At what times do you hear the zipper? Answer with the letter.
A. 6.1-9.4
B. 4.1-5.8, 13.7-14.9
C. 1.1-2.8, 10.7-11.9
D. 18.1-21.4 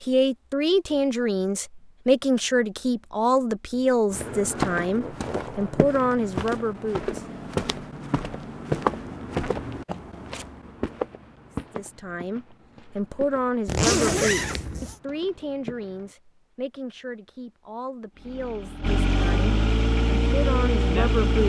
B.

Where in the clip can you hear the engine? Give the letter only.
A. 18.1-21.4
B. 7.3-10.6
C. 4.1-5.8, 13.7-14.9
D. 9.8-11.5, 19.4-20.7
A.